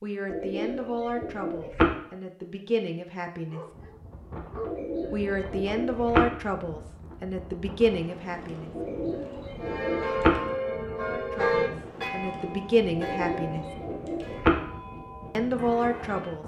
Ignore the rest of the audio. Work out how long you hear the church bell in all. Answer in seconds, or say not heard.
7 s.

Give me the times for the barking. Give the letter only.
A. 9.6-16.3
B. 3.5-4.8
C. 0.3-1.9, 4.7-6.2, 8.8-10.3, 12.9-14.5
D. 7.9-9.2
B.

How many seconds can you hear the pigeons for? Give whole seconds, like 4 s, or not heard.
6 s.